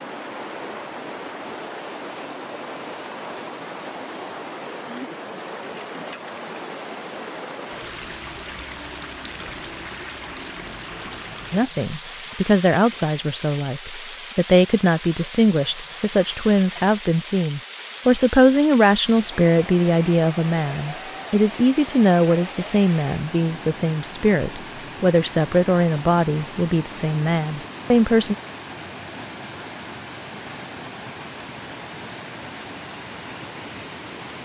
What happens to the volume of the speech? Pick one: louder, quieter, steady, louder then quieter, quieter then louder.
steady.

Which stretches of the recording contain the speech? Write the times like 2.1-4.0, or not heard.
11.5-28.4.